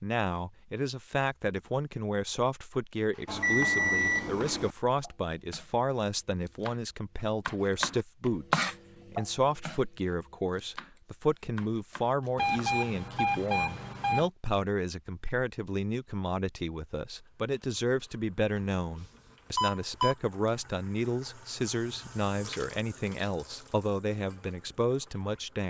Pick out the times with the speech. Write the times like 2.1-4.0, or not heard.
0.0-25.6.